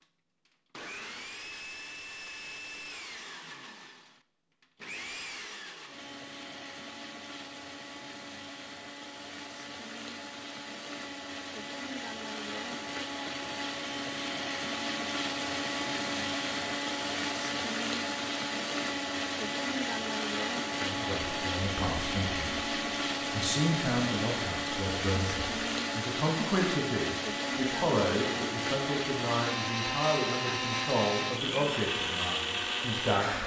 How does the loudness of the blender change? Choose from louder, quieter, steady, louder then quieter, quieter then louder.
louder.